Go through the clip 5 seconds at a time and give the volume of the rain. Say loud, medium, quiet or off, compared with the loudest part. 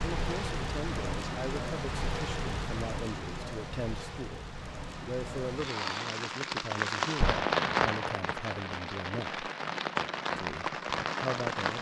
medium, loud, loud.